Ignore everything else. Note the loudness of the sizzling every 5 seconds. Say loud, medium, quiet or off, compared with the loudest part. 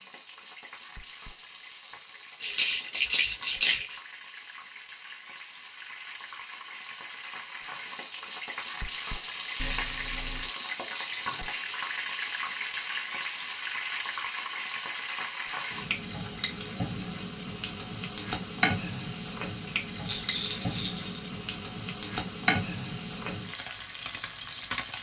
quiet, medium, loud, loud, loud.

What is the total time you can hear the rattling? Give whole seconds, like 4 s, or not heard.
4 s.